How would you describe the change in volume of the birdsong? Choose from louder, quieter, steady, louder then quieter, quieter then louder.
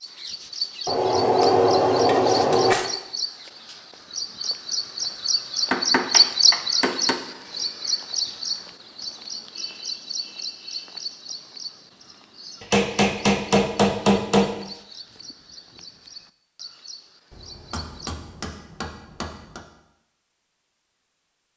louder then quieter.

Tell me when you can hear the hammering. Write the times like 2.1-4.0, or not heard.
0.8-2.9, 5.7-7.2, 12.6-14.5, 17.3-19.6.